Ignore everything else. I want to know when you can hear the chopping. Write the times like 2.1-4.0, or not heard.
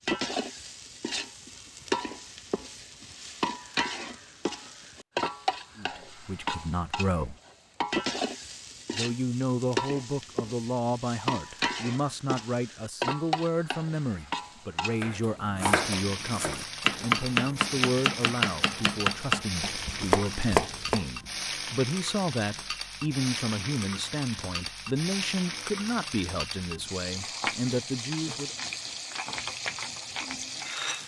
15.0-21.1.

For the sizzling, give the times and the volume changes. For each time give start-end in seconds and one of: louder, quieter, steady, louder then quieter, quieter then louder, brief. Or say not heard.
0.0-31.0 steady.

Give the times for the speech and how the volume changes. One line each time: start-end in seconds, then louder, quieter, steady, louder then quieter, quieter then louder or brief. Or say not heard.
5.8-7.3 brief
8.9-28.6 steady.